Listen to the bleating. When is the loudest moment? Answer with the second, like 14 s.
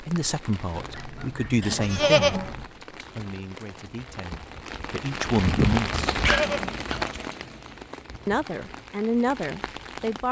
2 s.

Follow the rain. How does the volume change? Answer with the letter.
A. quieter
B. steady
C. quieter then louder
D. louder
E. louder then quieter
E.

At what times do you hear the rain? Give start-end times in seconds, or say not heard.
0.0-10.2.